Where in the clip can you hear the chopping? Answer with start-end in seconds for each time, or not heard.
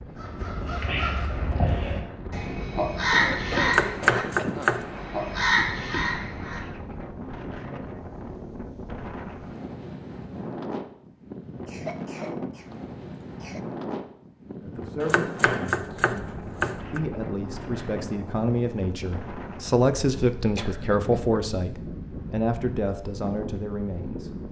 3.6-4.9, 15.0-17.0.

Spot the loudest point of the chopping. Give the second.
4 s.